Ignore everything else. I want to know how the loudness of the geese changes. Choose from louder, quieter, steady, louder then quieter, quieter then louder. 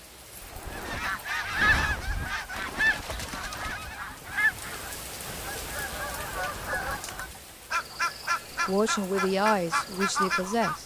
quieter then louder.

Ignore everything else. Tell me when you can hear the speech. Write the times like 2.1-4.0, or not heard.
8.7-10.8.